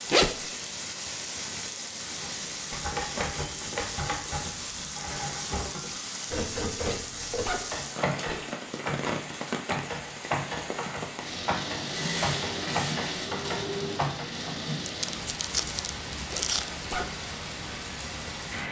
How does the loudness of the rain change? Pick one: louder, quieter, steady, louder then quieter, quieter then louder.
steady.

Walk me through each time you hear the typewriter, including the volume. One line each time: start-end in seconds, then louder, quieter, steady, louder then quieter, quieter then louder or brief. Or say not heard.
2.2-14.6 steady.